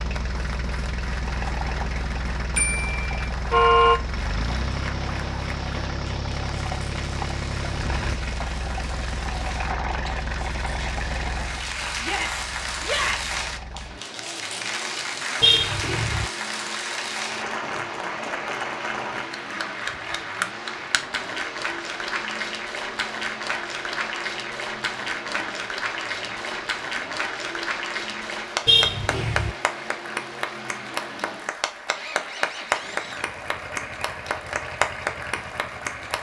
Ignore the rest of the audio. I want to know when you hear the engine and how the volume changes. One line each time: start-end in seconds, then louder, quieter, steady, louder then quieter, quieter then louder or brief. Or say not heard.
0.0-36.1 quieter.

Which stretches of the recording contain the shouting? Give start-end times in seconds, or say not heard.
12.0-13.3.